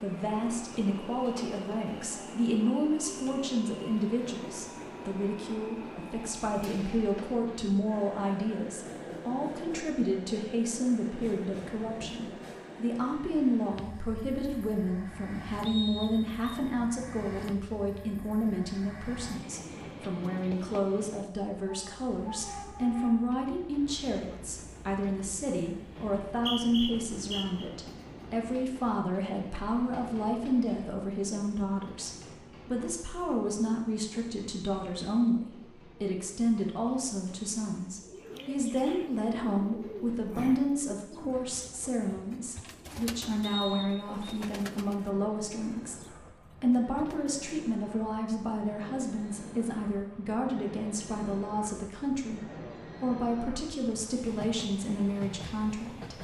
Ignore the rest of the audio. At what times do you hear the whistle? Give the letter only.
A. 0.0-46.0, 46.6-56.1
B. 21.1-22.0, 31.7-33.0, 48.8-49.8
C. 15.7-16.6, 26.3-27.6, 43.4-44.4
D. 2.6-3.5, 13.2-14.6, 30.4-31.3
C.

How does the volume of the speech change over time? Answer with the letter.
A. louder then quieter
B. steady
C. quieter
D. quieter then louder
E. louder
B.